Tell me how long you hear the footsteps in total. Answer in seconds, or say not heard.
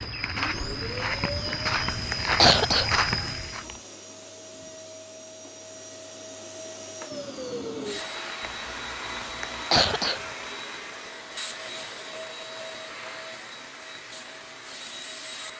4 s.